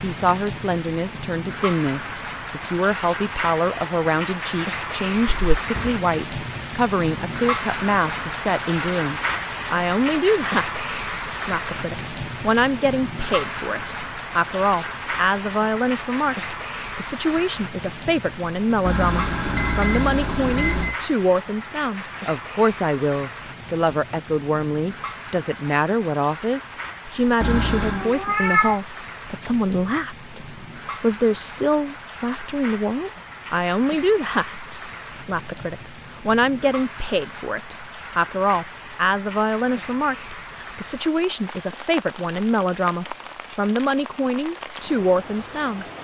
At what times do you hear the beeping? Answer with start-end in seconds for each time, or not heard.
18.9-20.9, 27.4-28.1.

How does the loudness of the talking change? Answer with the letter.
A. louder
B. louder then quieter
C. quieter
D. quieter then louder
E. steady
E.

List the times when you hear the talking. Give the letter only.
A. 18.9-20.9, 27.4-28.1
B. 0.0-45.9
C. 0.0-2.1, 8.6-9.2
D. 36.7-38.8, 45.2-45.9
B.